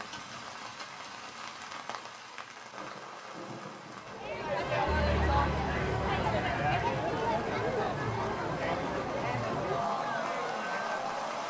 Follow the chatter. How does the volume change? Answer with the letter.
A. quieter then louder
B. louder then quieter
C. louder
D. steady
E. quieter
D.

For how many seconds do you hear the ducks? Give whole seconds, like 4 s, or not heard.
2 s.